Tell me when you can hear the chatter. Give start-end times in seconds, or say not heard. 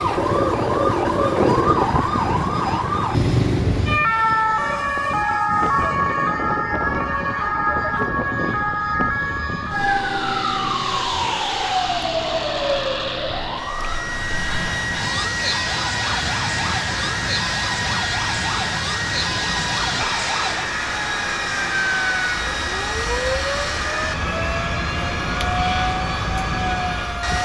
not heard.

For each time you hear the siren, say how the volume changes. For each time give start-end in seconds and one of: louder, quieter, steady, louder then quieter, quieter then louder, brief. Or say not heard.
0.0-27.4 quieter.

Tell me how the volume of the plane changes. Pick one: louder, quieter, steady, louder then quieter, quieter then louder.
louder.